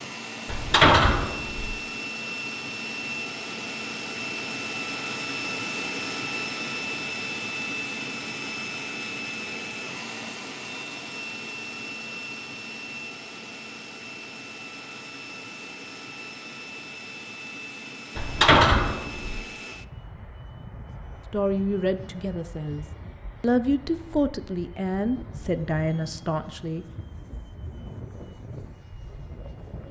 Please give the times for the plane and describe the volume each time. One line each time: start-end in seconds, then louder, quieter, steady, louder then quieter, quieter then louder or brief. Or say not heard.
0.0-29.8 quieter.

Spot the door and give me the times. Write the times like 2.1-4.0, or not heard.
0.5-1.8, 18.1-19.4.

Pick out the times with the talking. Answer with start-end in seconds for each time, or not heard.
21.3-26.9.